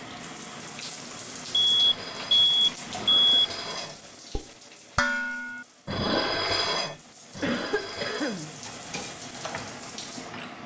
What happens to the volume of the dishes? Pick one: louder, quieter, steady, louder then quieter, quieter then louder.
louder then quieter.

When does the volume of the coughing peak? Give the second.
8 s.